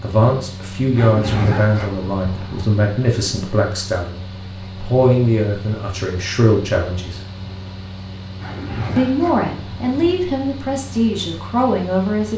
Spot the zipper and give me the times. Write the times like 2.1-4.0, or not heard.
0.9-2.6, 8.4-10.1.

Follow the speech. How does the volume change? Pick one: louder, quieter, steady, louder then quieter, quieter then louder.
steady.